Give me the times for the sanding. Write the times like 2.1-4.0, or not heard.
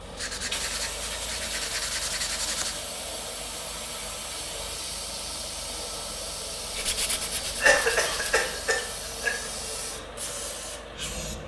0.1-2.8, 6.7-8.5.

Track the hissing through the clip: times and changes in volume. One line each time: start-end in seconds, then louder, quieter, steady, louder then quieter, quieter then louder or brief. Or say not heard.
0.0-11.4 steady.